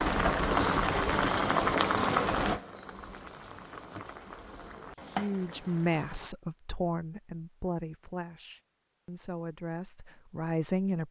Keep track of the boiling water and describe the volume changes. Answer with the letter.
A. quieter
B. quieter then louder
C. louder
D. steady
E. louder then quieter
B.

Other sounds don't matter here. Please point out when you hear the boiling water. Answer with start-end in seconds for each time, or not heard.
0.0-6.3.